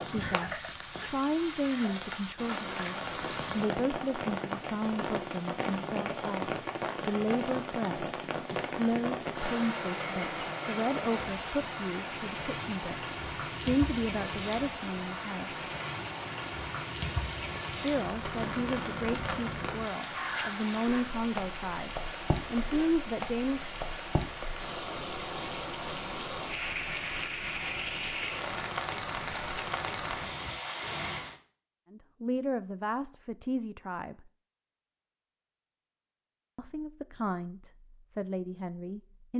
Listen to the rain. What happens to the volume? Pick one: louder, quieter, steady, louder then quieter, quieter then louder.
steady.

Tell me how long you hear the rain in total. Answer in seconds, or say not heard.
31 s.